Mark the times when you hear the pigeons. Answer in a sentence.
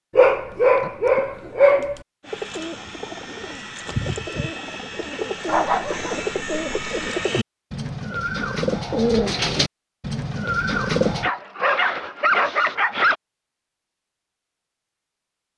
The pigeons can be heard from 2.2 to 11.3 s.